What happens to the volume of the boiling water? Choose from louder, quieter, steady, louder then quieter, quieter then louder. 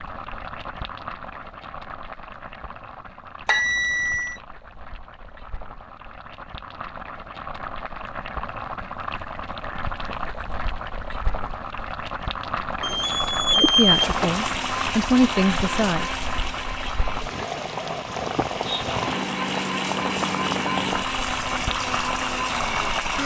louder.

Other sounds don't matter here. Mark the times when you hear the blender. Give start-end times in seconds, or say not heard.
13.8-23.2.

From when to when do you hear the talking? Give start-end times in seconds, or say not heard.
13.6-16.1.